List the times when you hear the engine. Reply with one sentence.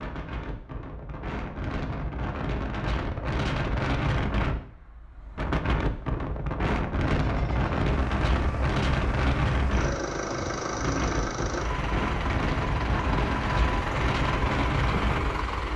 You can hear the engine from 7.0 to 15.7 s.